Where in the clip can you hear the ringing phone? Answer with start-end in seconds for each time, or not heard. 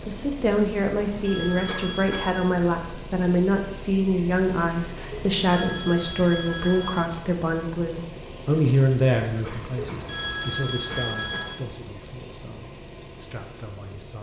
1.1-2.5, 5.1-7.1, 9.8-11.6.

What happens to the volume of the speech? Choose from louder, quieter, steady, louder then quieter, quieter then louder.
quieter.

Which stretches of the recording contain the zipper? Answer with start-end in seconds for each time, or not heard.
not heard.